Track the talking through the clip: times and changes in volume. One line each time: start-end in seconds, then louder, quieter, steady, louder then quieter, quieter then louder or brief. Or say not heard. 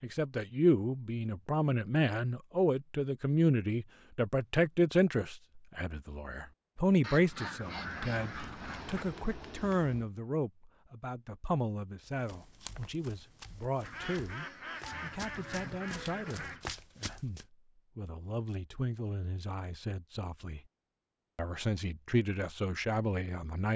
0.0-20.6 quieter
21.4-23.7 brief.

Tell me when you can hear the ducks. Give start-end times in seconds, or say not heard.
7.0-9.1, 13.8-16.6.